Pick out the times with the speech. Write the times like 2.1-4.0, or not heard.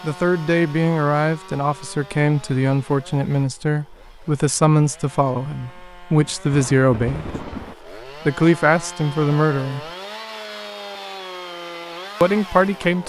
0.0-7.3, 8.2-9.8, 12.2-13.0.